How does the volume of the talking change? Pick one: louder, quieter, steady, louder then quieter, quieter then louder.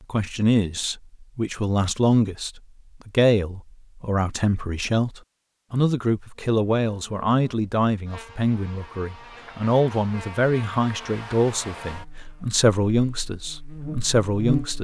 steady.